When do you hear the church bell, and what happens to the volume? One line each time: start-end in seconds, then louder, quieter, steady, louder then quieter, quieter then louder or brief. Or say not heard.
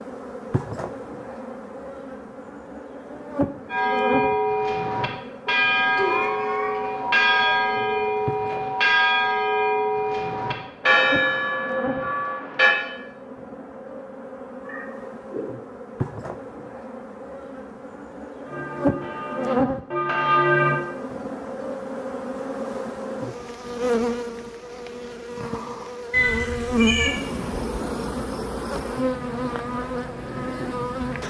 3.7-12.8 steady
18.4-20.8 brief.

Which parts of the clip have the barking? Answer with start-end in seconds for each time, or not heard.
not heard.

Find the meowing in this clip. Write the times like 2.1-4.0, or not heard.
6.0-8.1, 14.7-15.4, 26.1-27.1.